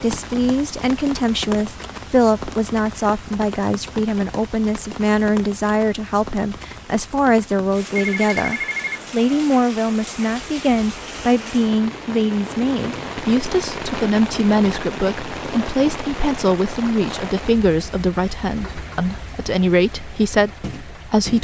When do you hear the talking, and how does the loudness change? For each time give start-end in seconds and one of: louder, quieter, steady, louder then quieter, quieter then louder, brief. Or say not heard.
0.0-21.4 steady.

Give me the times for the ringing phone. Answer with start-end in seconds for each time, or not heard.
8.0-9.4.